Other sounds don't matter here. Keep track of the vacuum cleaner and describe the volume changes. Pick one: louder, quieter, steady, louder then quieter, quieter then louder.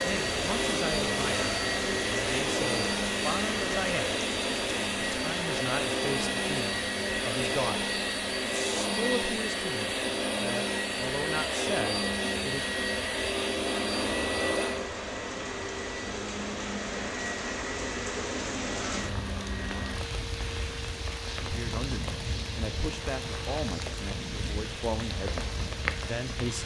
quieter.